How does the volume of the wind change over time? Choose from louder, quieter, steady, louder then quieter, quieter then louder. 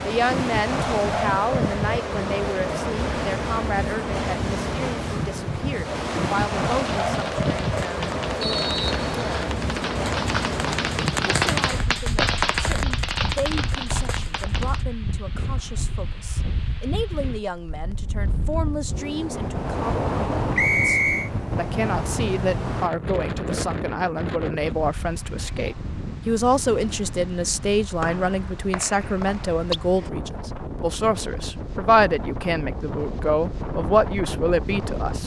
quieter.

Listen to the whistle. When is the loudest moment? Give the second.
21 s.